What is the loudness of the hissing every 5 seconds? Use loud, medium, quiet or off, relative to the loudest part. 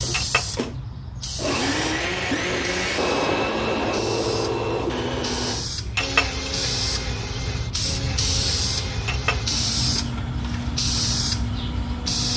medium, loud, loud.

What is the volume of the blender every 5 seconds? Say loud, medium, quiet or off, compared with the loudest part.
loud, medium, medium.